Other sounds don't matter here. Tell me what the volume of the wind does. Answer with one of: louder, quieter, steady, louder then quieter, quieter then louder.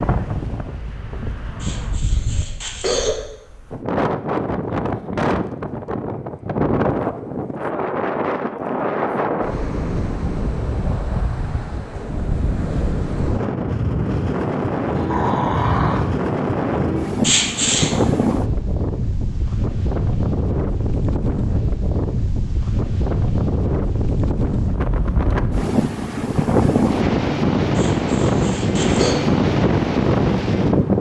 louder.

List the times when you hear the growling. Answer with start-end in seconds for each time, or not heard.
14.9-16.1.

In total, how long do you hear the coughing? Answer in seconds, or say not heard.
4 s.